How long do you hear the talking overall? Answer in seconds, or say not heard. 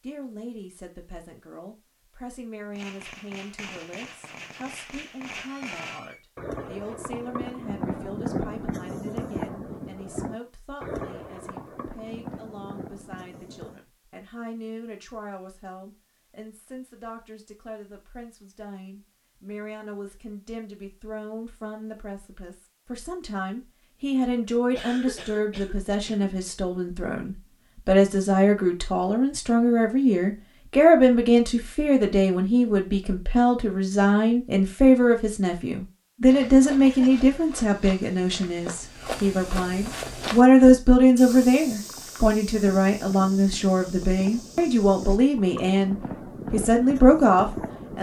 48 s.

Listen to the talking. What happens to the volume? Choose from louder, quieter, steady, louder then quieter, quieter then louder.
louder.